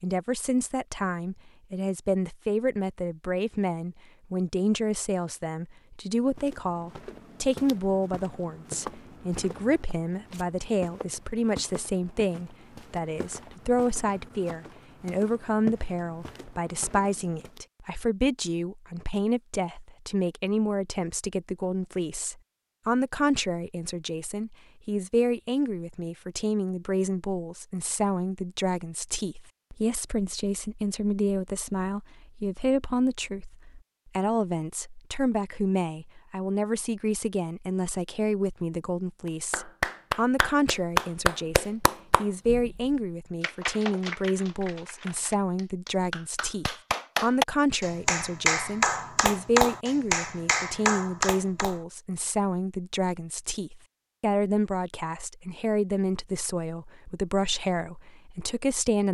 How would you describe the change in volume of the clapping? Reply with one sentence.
The volume of the clapping goes down, then up.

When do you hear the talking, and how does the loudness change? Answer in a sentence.
You can hear the talking from 0.0 to 59.1 s, at a steady volume.